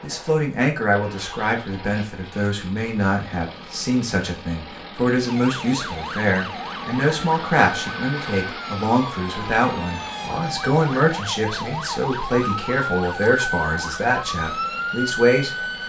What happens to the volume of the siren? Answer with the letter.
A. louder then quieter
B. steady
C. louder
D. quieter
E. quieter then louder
C.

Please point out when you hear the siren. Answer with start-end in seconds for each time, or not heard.
5.2-15.8.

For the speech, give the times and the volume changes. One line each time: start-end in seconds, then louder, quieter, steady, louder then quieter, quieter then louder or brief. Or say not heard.
0.0-15.8 steady.